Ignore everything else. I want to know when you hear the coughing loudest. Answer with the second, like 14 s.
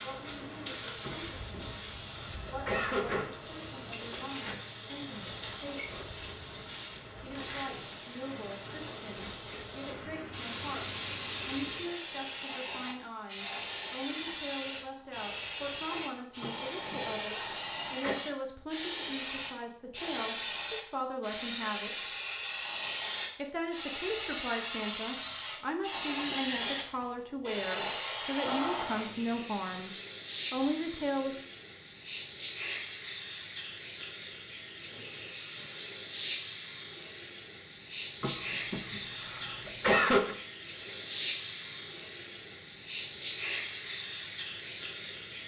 40 s.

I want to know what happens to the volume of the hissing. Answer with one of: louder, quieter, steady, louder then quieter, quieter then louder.
louder.